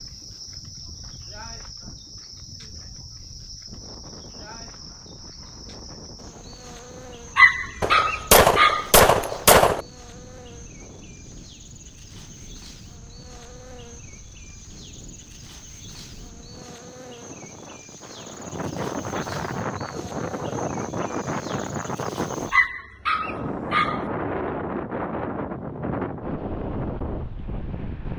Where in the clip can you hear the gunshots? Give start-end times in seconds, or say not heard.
7.8-9.8.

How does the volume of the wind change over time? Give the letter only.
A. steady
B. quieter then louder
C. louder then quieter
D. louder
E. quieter
D.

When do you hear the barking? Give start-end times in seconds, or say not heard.
7.3-8.9, 22.5-24.1.